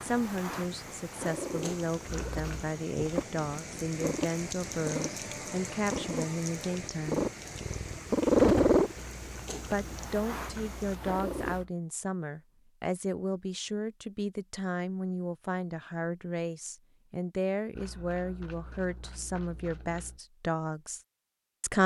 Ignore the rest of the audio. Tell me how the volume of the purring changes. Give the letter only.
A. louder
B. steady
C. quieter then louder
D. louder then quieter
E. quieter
D.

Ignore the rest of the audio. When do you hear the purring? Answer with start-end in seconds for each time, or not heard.
0.0-11.6.